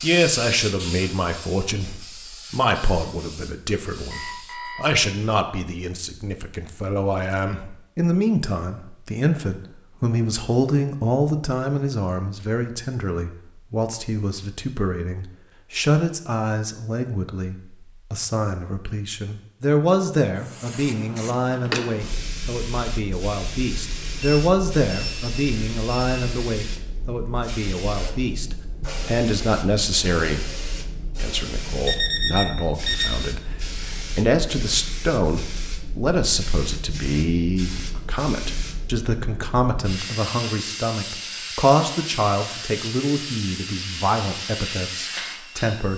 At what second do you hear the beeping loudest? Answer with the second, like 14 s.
32 s.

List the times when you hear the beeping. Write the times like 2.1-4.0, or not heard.
4.1-5.0, 24.2-26.1, 31.9-33.1.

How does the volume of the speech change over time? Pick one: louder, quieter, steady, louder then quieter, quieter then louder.
steady.